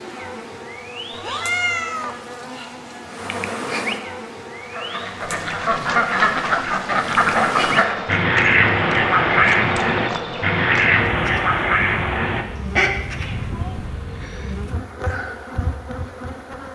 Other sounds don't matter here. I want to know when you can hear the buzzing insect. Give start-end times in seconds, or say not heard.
0.0-16.7.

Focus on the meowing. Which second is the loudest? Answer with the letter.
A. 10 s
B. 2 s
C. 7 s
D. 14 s
B.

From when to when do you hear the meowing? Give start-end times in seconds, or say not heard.
1.1-2.7, 12.6-14.6.